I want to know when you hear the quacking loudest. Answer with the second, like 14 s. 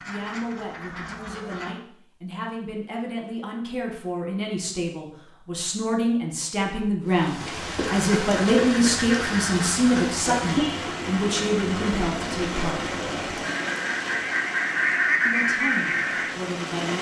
15 s.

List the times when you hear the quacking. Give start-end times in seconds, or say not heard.
0.0-1.8, 7.9-16.4.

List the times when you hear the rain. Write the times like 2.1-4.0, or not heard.
7.0-16.9.